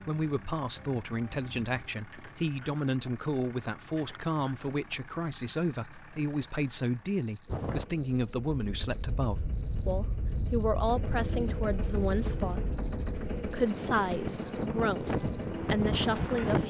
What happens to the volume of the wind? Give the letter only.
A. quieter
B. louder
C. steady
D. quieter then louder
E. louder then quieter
B.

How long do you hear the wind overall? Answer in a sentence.
The wind can be heard for 9 seconds in total.